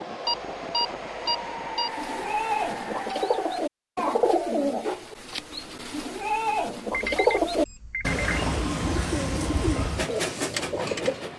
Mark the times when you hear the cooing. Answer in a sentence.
The cooing can be heard from 1.9 to 11.3 s.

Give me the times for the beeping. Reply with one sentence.
You can hear the beeping from 0.2 to 1.9 s and from 6.9 to 8.2 s.